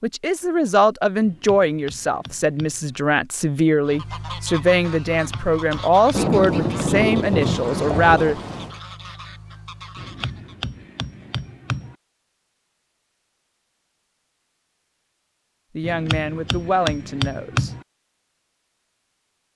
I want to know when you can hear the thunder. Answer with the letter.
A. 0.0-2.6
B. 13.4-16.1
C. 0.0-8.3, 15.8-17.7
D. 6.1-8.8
D.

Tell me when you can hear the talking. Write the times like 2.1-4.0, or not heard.
0.0-8.3, 15.8-17.7.